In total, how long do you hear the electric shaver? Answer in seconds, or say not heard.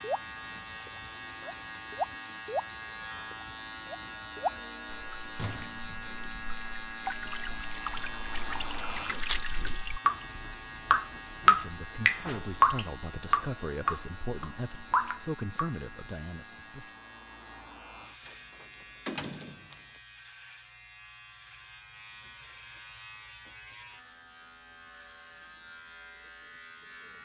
27 s.